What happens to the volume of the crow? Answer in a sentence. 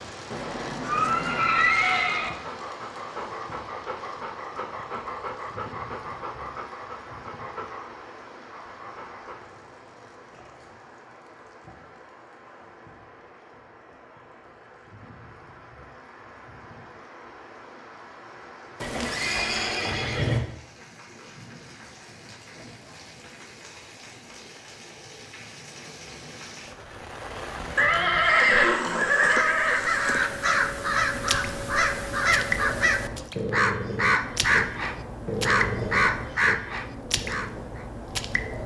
The volume of the crow stays about the same.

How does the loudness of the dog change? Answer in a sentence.
The loudness of the dog goes down.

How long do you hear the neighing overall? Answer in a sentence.
You can hear the neighing for 6 seconds altogether.